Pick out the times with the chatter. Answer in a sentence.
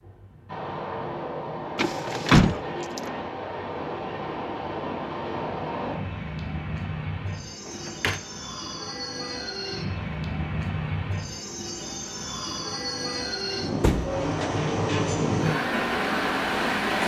You can't hear the chatter here.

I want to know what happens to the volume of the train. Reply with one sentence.
The loudness of the train goes up.